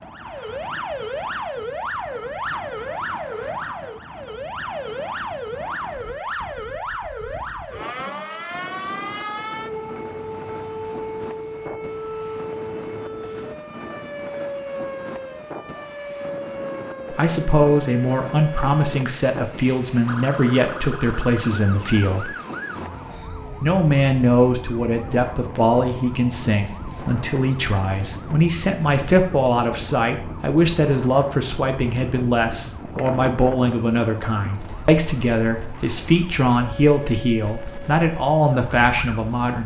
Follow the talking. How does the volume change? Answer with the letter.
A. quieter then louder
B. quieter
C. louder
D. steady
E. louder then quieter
D.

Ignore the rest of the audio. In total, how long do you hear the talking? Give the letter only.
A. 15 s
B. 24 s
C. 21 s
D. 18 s
C.